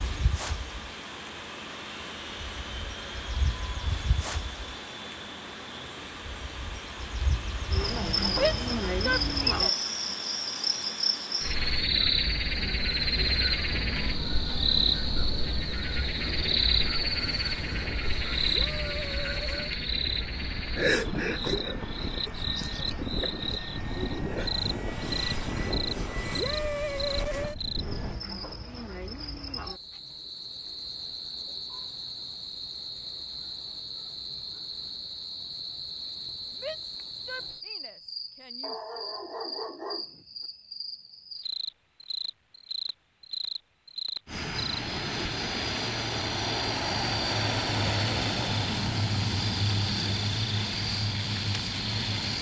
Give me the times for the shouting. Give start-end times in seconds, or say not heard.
8.3-9.8, 36.5-39.0.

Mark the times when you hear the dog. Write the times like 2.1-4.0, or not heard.
38.6-40.2.